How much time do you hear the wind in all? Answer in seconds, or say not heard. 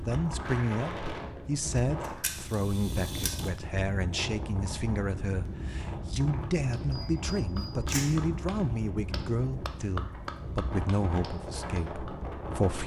13 s.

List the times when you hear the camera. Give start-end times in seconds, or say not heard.
2.0-3.5, 6.8-8.2.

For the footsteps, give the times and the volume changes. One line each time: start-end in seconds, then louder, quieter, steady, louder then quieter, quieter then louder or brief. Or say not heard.
not heard.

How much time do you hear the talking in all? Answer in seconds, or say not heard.
13 s.